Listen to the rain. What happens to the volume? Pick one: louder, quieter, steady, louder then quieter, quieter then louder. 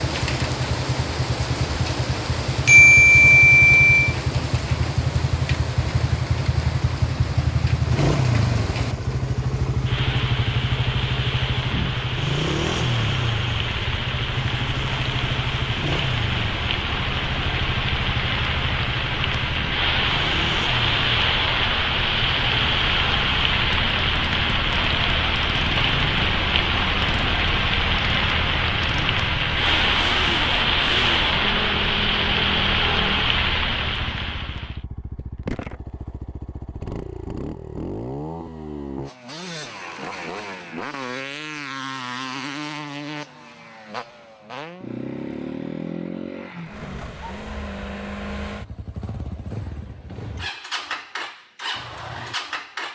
louder.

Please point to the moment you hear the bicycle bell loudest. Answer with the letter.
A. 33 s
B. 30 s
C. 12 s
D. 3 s
D.